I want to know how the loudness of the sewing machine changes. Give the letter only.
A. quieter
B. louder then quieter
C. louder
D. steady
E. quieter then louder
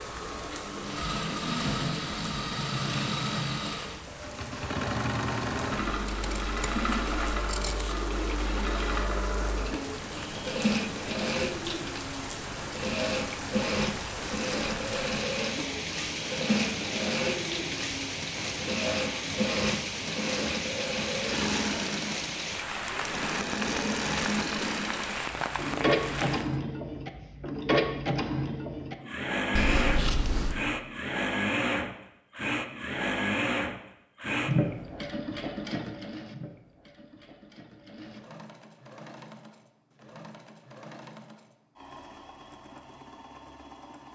A.